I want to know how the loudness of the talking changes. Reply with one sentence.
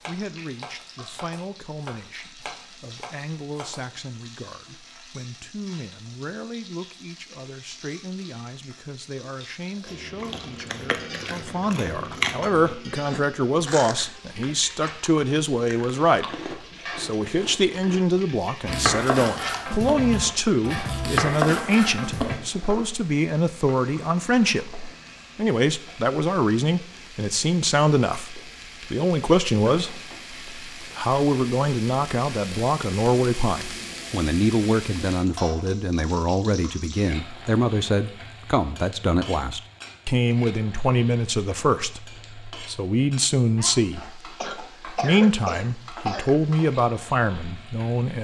The loudness of the talking goes up.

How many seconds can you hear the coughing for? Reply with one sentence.
You can hear the coughing for 2 seconds altogether.